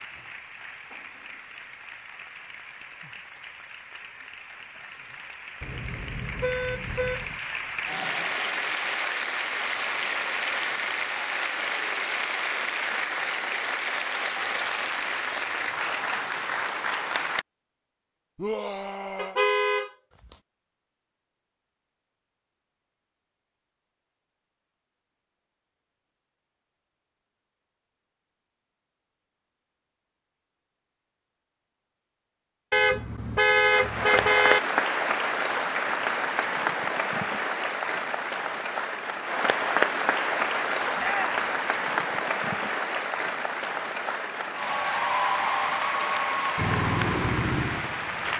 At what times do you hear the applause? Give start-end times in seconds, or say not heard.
0.0-17.4, 33.7-48.3.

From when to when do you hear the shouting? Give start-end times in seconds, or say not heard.
18.4-19.4, 41.0-41.4.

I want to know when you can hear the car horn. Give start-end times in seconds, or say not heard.
5.6-7.4, 19.1-20.4, 32.7-34.6.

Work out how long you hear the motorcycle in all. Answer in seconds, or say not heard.
2 s.